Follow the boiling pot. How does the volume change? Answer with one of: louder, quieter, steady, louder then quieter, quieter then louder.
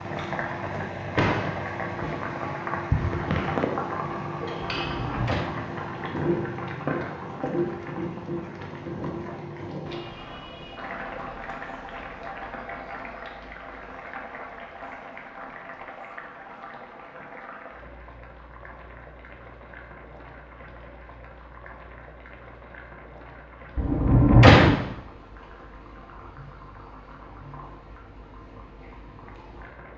quieter.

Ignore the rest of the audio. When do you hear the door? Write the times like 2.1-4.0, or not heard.
4.8-5.5, 23.8-24.8.